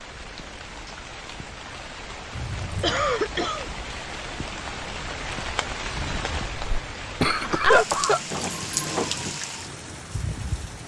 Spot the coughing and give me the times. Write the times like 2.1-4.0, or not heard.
2.8-3.7, 6.5-8.4.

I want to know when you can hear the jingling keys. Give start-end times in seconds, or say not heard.
2.3-3.0, 8.3-9.3.